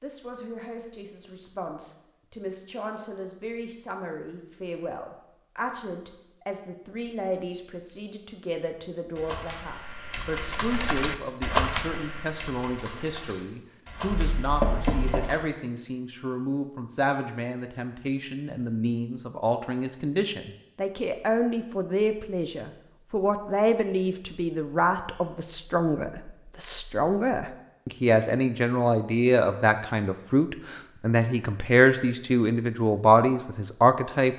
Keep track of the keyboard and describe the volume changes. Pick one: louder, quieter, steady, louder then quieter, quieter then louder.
louder then quieter.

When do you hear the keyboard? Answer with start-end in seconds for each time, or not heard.
9.1-15.4.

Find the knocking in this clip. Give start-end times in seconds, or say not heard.
14.1-15.3.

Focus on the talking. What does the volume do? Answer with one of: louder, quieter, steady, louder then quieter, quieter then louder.
louder.